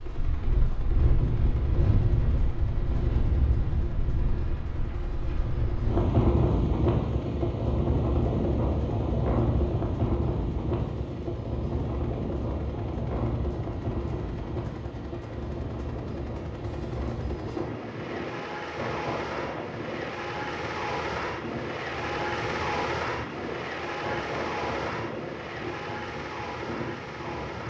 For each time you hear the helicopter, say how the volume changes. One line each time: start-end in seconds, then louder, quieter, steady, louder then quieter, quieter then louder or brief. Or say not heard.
0.0-27.6 louder.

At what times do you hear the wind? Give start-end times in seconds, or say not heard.
0.0-27.6.